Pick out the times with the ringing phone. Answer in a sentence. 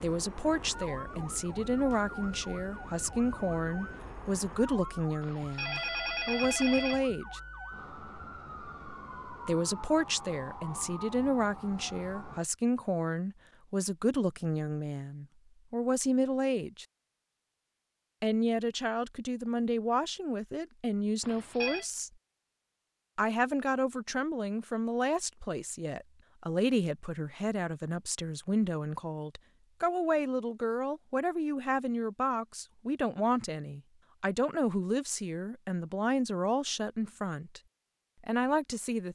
You can hear the ringing phone from 5.2 to 7.0 s and from 21.2 to 21.9 s.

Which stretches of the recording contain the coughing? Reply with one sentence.
The coughing can't be heard in this clip.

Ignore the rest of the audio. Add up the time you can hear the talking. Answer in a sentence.
The talking can be heard for 34 seconds in total.